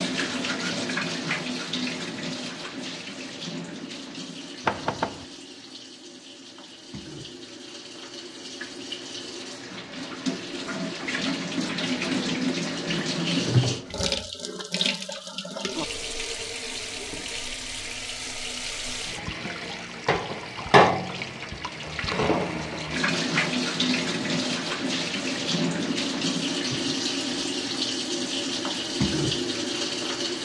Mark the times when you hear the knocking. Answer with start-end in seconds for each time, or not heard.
4.7-5.2.